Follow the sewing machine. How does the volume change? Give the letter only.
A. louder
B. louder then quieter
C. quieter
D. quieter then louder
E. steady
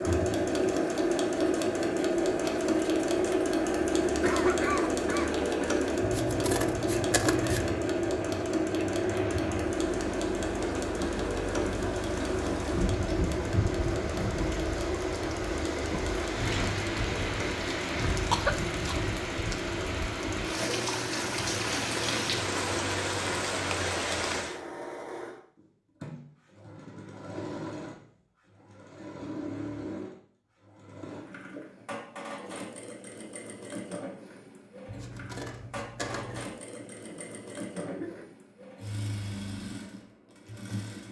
C.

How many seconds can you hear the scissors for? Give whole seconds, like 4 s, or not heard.
3 s.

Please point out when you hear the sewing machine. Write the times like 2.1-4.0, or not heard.
0.0-41.0.